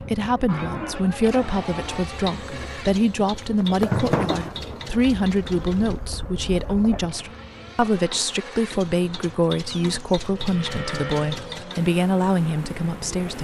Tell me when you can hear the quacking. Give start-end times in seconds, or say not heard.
not heard.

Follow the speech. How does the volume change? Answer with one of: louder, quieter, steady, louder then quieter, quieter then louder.
steady.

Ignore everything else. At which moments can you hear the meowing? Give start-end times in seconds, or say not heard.
not heard.